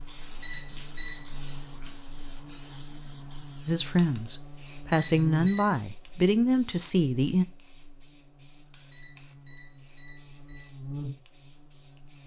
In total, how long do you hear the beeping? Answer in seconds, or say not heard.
4 s.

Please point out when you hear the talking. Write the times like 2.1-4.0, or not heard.
3.6-7.5.